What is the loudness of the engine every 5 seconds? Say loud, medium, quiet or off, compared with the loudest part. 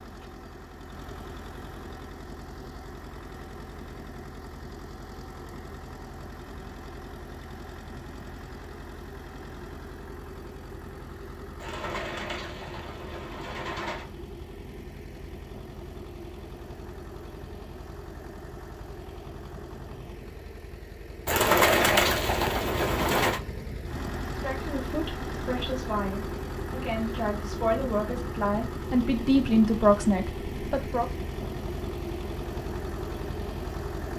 medium, medium, medium, medium, loud, loud, loud.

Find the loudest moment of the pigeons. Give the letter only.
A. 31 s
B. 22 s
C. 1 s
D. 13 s
B.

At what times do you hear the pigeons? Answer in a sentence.
The pigeons can be heard from 11.6 to 14.1 s and from 21.2 to 23.4 s.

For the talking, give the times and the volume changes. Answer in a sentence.
The talking can be heard from 24.4 to 31.1 s, getting louder.